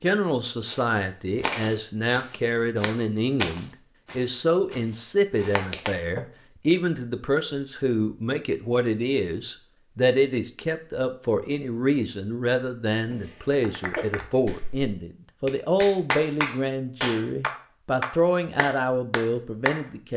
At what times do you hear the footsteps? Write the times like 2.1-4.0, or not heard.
0.7-6.2.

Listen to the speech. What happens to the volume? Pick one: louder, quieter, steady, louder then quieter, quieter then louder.
steady.